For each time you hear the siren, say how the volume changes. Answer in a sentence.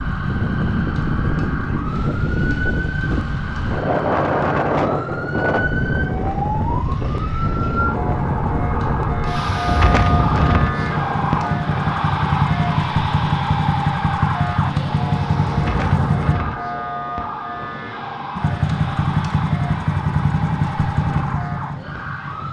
The siren can be heard from 0.0 to 22.4 s, getting louder then quieter.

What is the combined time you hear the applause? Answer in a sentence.
You can't hear the applause here.